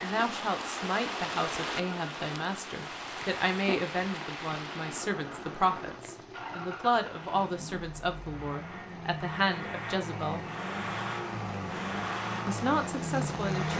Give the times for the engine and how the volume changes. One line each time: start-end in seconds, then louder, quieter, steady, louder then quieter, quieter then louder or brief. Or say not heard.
0.0-13.7 louder.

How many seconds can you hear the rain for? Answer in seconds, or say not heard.
14 s.